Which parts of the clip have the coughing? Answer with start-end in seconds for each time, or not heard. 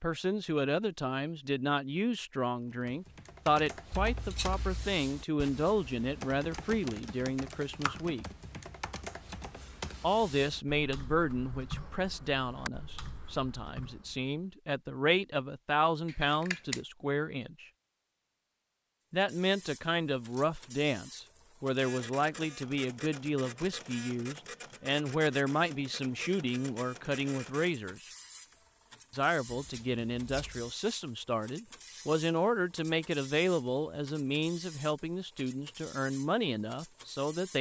not heard.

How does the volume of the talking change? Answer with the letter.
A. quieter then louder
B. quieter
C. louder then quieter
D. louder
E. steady
E.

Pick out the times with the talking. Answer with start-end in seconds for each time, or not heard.
0.0-8.2, 10.0-17.6, 19.1-28.0, 29.1-37.5.